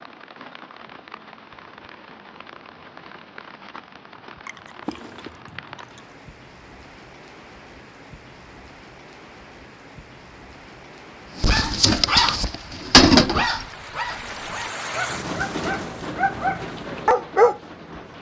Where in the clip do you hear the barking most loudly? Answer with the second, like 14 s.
13 s.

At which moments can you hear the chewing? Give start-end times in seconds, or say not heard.
4.5-6.2.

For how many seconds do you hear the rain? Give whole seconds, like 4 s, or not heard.
18 s.